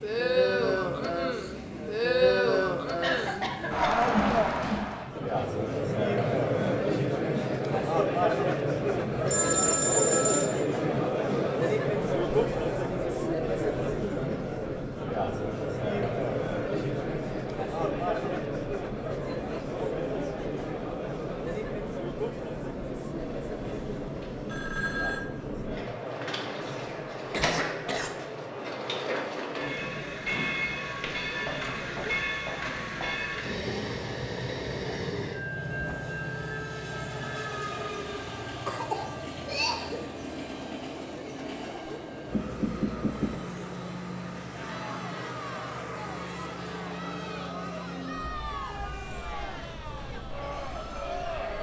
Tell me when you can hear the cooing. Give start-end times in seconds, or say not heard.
not heard.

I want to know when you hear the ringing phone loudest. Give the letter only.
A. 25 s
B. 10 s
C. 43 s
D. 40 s
B.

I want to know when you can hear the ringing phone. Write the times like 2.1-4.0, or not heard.
9.2-10.6, 23.1-25.2, 42.3-43.4.